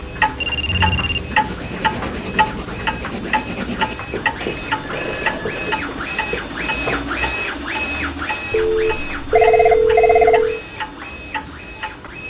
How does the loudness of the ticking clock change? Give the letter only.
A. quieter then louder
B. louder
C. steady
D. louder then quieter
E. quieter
E.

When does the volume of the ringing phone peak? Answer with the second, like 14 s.
10 s.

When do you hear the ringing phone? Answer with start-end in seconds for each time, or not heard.
0.3-2.4, 4.4-5.8, 8.5-10.6.